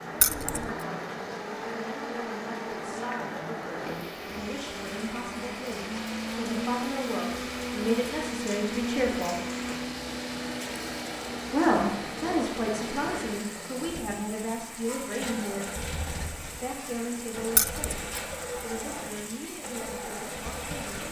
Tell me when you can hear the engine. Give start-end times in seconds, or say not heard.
0.0-21.0.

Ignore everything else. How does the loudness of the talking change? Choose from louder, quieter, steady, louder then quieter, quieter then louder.
louder then quieter.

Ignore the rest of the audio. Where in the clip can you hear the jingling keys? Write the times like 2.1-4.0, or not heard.
0.2-0.7, 17.6-18.1.